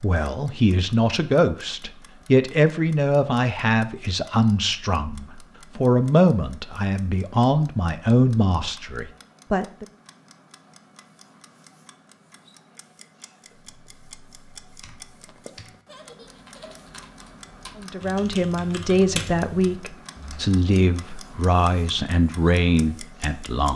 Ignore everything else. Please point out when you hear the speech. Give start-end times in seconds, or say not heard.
0.0-9.8, 17.8-23.7.